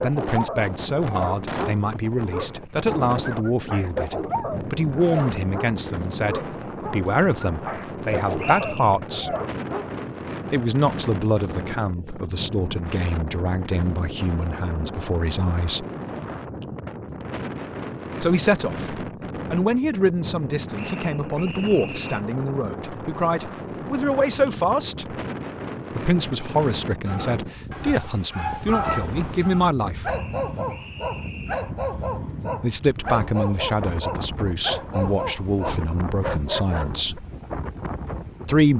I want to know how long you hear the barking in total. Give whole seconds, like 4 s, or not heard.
20 s.